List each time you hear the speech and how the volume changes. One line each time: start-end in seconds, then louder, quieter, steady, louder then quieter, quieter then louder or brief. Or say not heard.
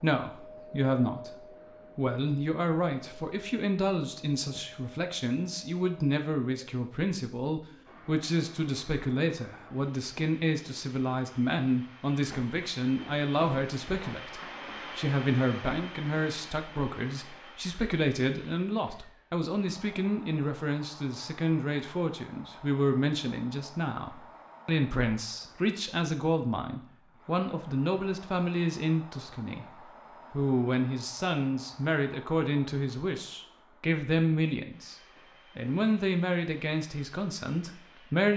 0.0-35.0 steady
35.5-38.3 brief.